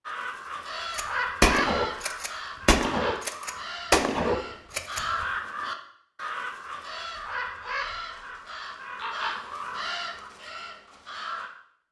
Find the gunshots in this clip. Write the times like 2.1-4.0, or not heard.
0.9-5.2.